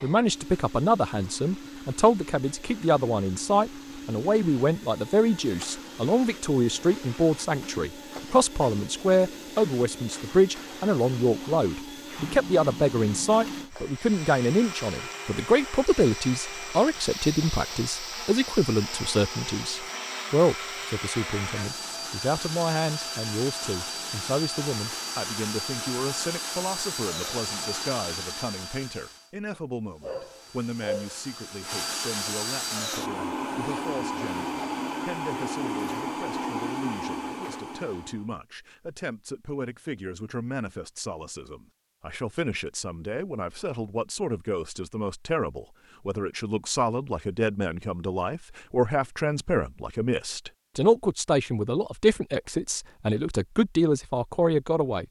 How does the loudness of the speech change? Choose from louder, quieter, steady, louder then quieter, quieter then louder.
quieter then louder.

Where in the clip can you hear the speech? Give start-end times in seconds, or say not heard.
0.0-55.0.